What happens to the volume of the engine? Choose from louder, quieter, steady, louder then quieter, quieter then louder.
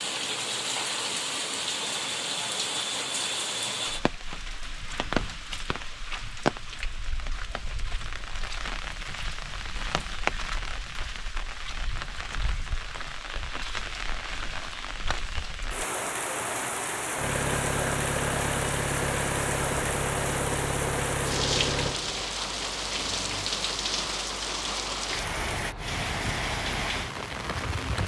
quieter.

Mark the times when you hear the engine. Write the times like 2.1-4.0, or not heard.
17.1-23.5.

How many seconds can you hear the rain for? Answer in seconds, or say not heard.
28 s.